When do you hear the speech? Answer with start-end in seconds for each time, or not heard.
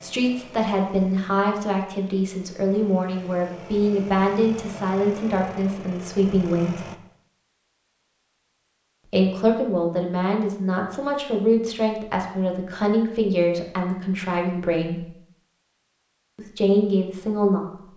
0.0-6.8, 9.1-15.1, 16.4-17.9.